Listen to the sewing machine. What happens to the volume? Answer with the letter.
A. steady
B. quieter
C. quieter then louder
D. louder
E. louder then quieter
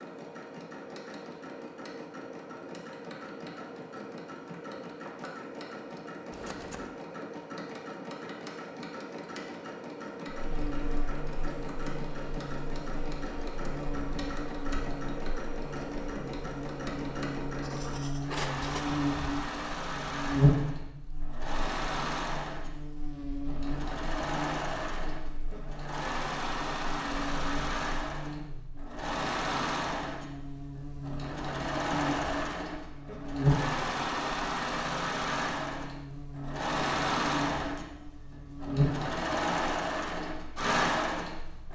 D.